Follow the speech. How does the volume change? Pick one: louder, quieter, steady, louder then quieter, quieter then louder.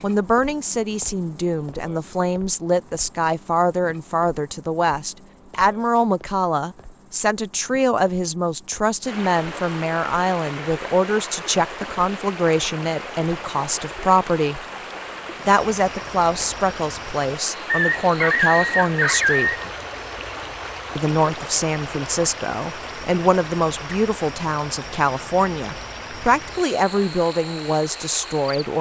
steady.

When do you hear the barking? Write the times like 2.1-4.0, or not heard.
17.6-19.6.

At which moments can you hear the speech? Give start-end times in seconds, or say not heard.
0.0-14.6, 15.4-19.5, 20.9-28.7.